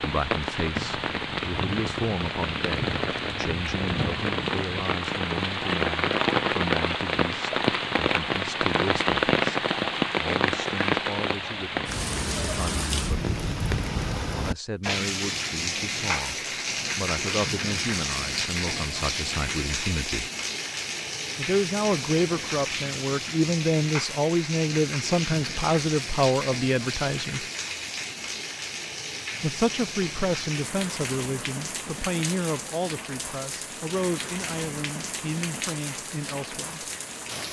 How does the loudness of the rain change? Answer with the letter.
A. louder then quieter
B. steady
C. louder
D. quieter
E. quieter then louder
D.